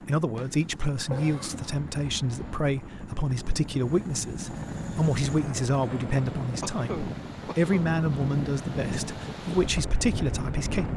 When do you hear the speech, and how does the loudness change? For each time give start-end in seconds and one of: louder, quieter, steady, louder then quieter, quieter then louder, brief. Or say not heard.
0.1-10.9 steady.